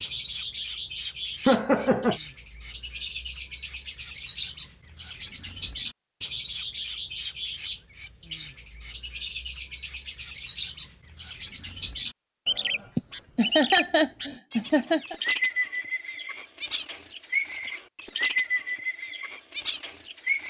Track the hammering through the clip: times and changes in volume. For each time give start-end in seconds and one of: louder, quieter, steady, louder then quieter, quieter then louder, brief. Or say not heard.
not heard.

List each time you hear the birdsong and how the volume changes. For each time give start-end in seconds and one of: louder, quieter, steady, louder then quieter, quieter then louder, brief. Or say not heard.
0.0-20.4 steady.